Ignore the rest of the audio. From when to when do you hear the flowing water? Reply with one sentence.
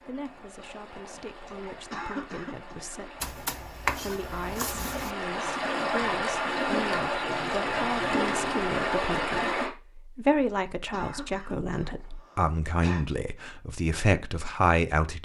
The flowing water can be heard from 0.0 to 9.7 s.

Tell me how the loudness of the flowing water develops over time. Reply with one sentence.
The loudness of the flowing water goes up.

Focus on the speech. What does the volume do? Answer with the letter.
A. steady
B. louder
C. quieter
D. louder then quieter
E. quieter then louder
B.